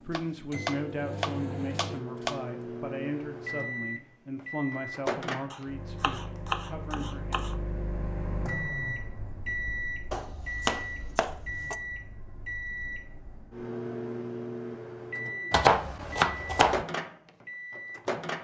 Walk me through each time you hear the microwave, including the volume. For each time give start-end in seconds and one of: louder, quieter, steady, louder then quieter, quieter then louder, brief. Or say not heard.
0.0-18.4 steady.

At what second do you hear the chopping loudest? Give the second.
16 s.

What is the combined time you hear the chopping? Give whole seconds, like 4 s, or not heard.
7 s.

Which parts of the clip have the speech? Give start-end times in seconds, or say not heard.
0.0-7.5.